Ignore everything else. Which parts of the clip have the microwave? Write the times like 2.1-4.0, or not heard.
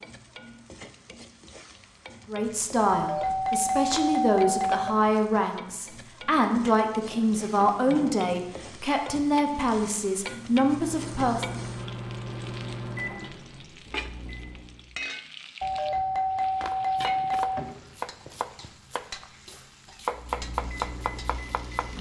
10.7-14.9, 20.1-21.9.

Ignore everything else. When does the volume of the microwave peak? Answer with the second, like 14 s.
13 s.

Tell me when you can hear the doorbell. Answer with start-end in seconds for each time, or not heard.
2.9-5.0, 15.6-17.6.